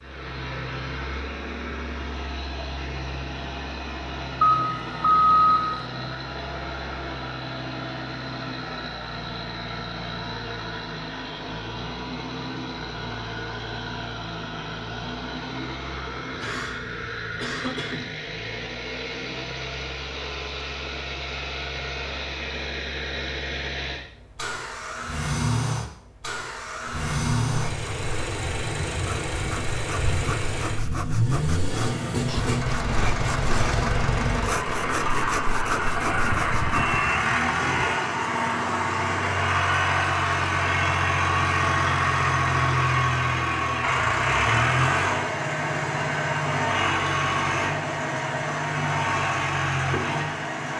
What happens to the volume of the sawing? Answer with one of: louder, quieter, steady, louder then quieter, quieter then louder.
louder.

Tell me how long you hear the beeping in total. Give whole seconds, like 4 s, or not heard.
3 s.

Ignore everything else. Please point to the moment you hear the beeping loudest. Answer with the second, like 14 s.
5 s.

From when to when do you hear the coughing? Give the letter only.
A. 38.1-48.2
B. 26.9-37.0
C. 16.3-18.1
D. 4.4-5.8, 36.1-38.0
C.